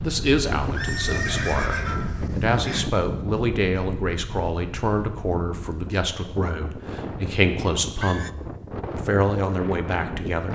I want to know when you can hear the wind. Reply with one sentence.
The wind can be heard from 0.0 to 10.5 s.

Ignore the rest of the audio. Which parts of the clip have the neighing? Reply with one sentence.
You can hear the neighing from 0.5 to 2.9 s and from 6.3 to 8.3 s.